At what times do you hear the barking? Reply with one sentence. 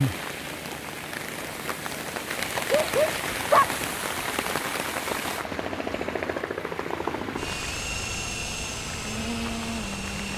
You can hear the barking from 2.5 to 3.6 s.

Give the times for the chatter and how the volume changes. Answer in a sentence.
You can't hear the chatter here.